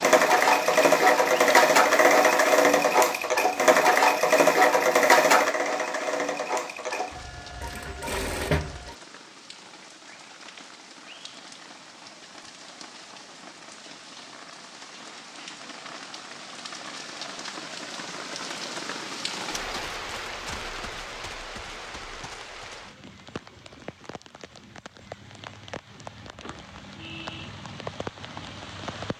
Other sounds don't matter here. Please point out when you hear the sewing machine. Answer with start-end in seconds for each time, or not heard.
0.0-8.9.